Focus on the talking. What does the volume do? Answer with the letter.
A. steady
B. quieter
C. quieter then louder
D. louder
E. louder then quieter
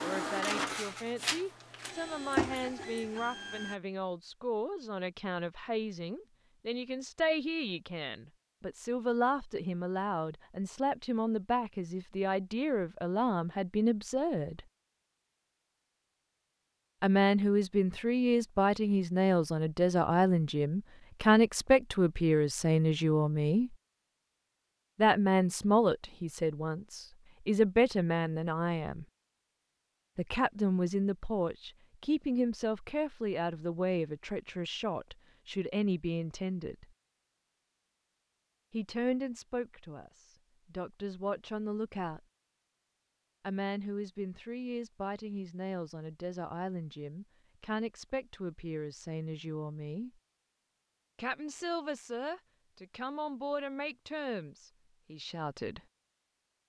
E.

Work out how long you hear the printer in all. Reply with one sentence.
The printer can be heard for 4 seconds in total.